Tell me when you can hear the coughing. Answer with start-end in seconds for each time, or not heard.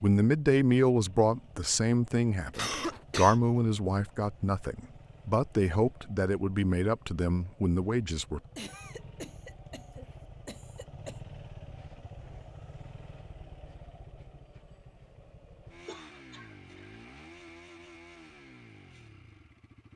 2.5-3.4, 8.6-11.2, 15.8-16.9.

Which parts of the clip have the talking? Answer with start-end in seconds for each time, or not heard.
0.0-8.4.